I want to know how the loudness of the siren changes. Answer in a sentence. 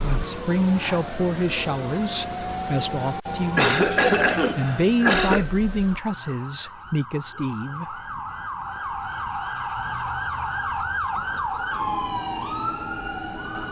The volume of the siren goes down, then up.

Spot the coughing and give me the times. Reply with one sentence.
You can hear the coughing from 3.5 to 5.5 s.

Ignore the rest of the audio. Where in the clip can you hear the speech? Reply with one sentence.
The speech can be heard from 0.0 to 8.0 s.